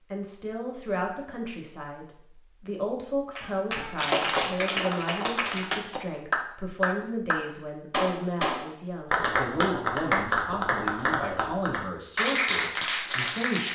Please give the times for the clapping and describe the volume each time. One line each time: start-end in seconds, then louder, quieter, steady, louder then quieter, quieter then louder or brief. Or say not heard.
3.4-13.6 steady.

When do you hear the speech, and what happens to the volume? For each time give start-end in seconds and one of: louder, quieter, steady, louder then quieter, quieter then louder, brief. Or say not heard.
0.1-13.6 steady.